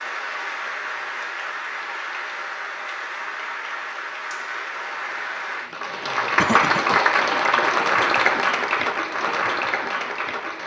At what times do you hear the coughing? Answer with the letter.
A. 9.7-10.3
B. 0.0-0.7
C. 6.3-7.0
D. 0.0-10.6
C.